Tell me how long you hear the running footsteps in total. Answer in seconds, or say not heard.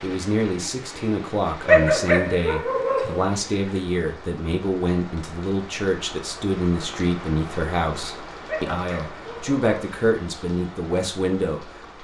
not heard.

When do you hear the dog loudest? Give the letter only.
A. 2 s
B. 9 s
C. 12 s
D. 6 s
A.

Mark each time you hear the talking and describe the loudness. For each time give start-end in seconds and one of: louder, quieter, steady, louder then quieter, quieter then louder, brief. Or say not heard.
0.0-11.8 steady.